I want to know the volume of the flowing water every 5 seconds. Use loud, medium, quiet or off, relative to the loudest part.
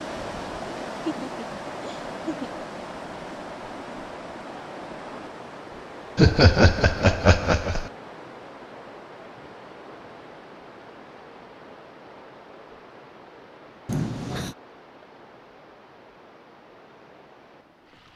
loud, medium, medium, quiet.